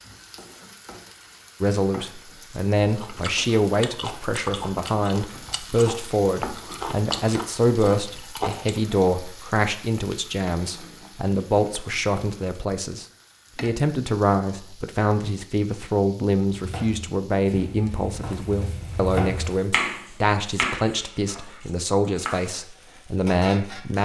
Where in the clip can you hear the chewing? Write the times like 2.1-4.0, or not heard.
2.8-8.8.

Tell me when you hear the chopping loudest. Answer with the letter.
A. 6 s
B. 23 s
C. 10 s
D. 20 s
D.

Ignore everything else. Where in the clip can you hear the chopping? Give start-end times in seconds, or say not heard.
16.5-22.5.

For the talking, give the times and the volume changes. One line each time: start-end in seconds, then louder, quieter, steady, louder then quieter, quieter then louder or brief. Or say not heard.
1.6-24.0 steady.